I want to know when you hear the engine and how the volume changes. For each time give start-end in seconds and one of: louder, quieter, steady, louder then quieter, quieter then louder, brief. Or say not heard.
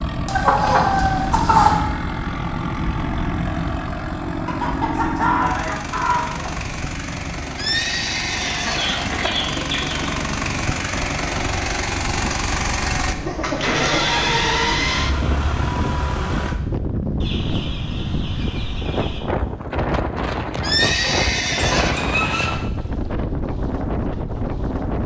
0.0-16.6 louder.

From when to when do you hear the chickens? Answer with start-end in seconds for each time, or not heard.
0.2-1.8, 4.5-6.5, 8.3-10.1, 13.2-14.8, 17.2-19.2, 20.8-22.5.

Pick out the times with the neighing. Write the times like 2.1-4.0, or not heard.
7.5-9.3, 20.6-22.0.